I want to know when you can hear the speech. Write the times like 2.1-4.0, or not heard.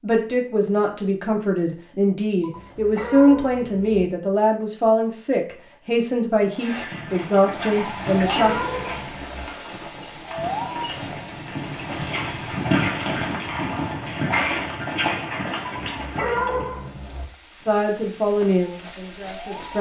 0.0-8.6, 17.6-19.7.